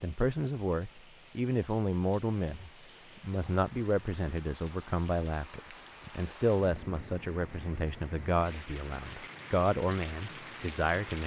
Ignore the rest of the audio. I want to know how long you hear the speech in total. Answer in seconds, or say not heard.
11 s.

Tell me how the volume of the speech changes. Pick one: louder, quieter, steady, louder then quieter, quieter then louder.
steady.